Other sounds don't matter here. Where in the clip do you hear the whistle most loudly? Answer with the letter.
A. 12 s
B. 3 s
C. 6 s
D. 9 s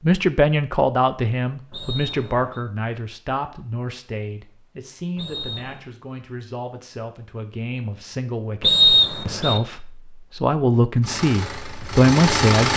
D.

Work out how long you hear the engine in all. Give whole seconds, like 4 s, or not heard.
2 s.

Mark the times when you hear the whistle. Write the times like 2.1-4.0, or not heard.
1.7-2.6, 5.2-5.8, 8.6-9.6.